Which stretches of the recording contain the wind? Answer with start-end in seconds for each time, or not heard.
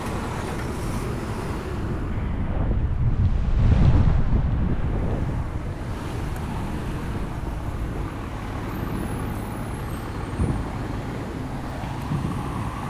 0.0-12.8.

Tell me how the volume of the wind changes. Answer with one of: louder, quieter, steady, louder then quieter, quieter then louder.
louder then quieter.